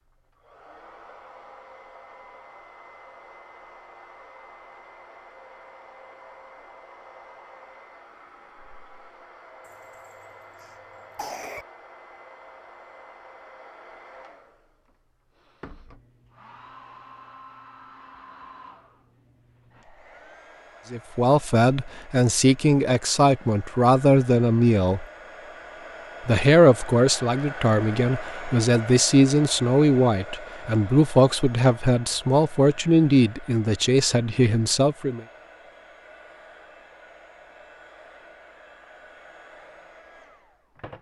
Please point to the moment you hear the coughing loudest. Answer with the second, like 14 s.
11 s.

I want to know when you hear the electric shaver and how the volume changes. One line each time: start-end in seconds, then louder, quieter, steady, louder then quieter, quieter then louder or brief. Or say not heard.
not heard.